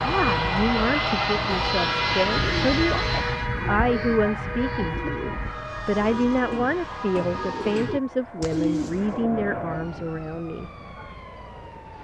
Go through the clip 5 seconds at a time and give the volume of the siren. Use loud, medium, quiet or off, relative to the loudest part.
loud, medium, quiet.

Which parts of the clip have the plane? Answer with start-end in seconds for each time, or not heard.
0.0-3.5, 5.4-11.9.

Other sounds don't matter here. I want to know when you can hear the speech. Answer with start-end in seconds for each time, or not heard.
0.0-10.7.